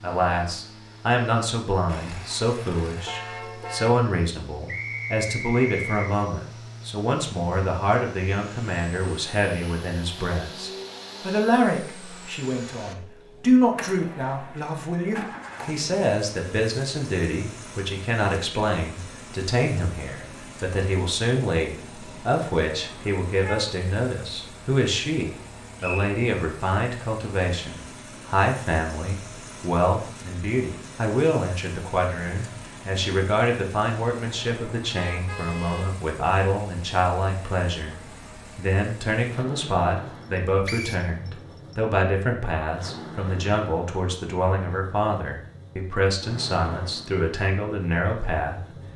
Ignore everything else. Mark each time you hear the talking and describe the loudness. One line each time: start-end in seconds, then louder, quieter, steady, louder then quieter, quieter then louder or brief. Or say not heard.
0.0-48.6 steady.